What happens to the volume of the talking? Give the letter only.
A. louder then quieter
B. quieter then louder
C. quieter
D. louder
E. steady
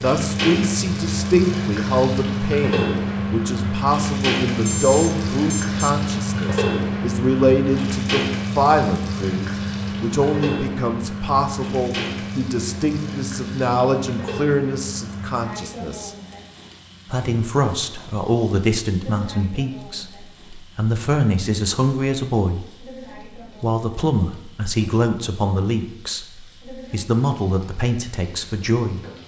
E.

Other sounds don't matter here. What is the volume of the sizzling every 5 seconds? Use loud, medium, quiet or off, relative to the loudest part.
loud, loud, medium, quiet, quiet, quiet.